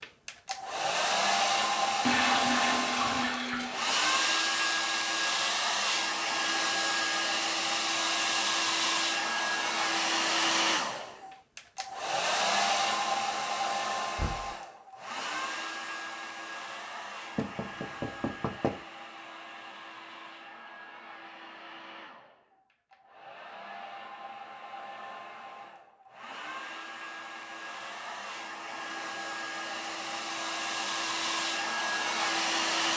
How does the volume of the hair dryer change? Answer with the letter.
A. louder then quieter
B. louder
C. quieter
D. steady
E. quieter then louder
E.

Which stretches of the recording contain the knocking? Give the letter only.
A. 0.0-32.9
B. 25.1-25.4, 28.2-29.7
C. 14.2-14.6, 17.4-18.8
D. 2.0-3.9
C.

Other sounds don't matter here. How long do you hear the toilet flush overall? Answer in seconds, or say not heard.
2 s.